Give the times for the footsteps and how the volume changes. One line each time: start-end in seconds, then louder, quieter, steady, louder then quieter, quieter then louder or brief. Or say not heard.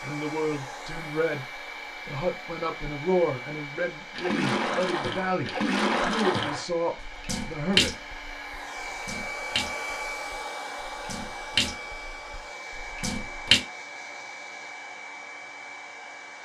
not heard.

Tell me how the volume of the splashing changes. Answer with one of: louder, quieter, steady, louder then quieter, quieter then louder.
quieter then louder.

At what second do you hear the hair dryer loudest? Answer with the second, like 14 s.
10 s.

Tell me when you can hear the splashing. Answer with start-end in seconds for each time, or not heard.
4.2-13.6.